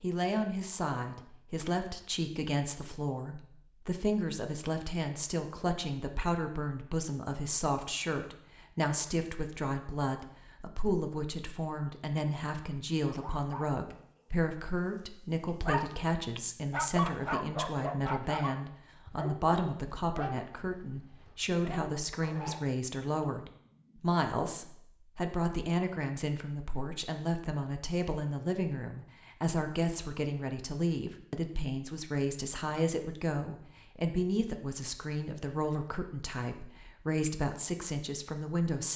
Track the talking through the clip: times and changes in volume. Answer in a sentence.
You can hear the talking from 0.0 to 38.9 s, at a steady volume.